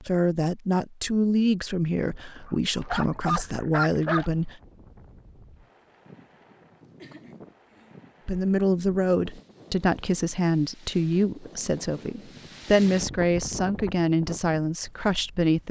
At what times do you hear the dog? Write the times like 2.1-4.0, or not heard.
2.4-4.3.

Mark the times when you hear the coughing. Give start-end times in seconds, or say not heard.
7.0-8.0.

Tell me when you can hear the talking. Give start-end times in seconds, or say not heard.
0.0-4.5, 8.2-15.6.